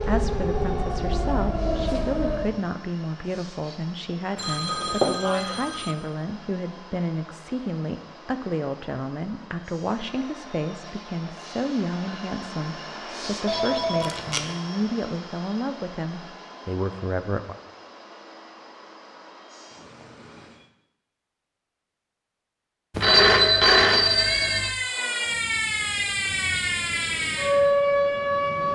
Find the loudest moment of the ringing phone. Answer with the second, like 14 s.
23 s.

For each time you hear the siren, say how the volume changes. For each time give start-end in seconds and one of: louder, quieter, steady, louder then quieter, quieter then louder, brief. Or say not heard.
0.0-2.6 brief
23.9-28.7 louder.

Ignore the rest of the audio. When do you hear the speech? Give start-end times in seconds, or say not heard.
0.0-17.6.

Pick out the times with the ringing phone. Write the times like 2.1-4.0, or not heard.
4.3-6.0, 13.4-14.4, 22.9-24.8.